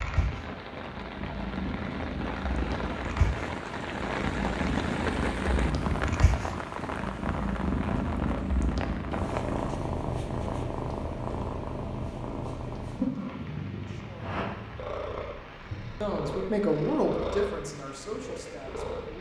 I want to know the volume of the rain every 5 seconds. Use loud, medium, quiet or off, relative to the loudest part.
loud, loud, medium, quiet.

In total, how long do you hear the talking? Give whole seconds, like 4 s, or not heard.
4 s.